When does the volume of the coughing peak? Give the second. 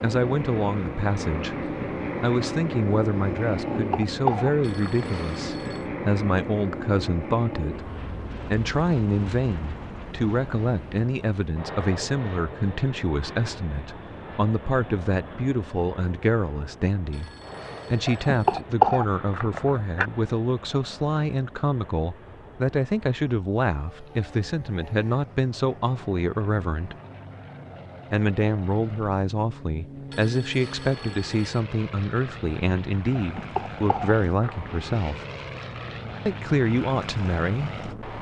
19 s.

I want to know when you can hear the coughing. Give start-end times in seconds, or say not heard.
3.7-5.2, 18.1-20.1, 33.1-34.5.